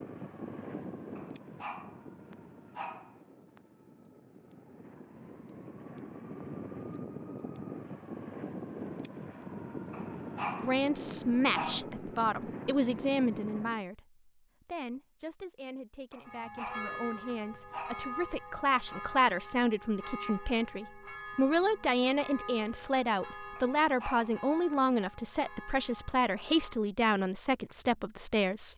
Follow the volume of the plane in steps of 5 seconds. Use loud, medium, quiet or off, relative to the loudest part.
medium, loud, loud, off, off, off.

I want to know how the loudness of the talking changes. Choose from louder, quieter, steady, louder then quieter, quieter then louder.
quieter then louder.